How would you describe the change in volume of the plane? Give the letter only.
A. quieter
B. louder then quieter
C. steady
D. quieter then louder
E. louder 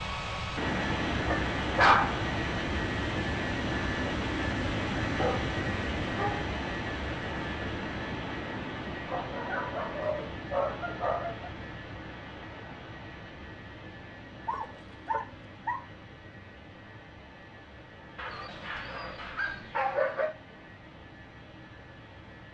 A.